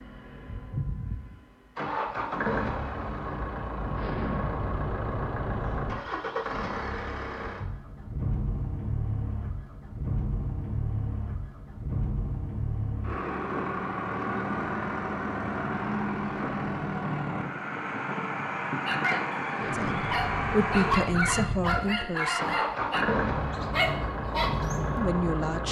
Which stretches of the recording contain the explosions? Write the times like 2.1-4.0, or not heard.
4.0-6.0, 19.6-21.6.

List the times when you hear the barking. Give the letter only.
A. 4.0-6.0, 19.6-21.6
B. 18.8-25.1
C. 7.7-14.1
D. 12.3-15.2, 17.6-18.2
B.